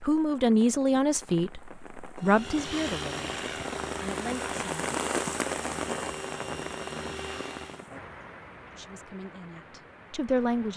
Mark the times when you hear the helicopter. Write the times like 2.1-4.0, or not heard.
2.2-7.9.